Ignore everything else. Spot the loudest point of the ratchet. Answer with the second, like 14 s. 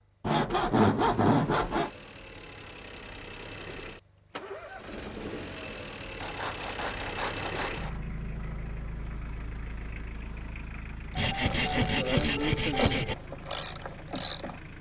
14 s.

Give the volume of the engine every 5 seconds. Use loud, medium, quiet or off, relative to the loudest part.
medium, loud, medium.